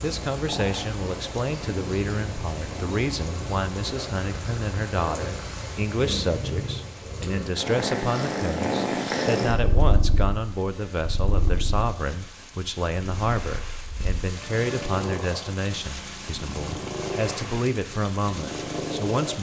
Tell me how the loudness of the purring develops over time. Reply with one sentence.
The loudness of the purring goes up, then down.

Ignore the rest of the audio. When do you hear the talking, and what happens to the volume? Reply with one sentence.
The talking can be heard from 0.0 to 19.3 s, at a steady volume.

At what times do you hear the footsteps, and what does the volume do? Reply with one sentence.
The footsteps can't be heard in this clip.